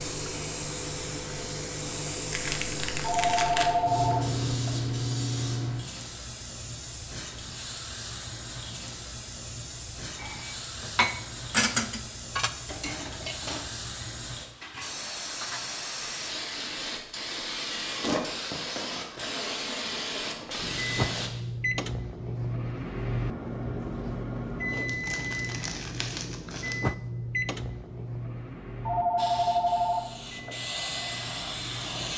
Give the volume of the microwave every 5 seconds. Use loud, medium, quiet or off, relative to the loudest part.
medium, off, off, off, loud, loud, medium.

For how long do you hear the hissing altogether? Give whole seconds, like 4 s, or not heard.
24 s.